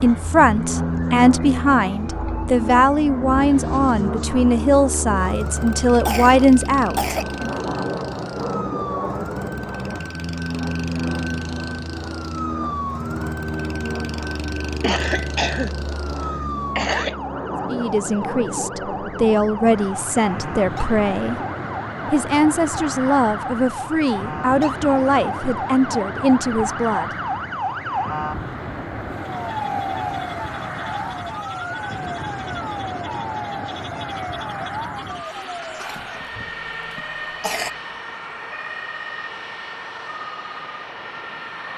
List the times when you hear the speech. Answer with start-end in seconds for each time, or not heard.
0.0-7.5, 17.6-21.4, 22.1-27.1.